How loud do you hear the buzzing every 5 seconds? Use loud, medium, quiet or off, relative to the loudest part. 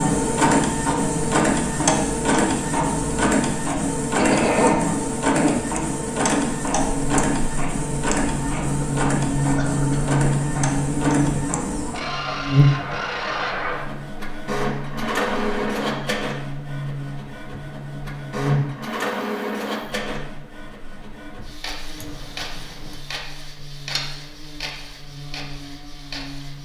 off, loud, loud, medium, quiet, quiet.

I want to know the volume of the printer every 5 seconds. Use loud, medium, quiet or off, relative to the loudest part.
loud, loud, medium, medium, quiet, quiet.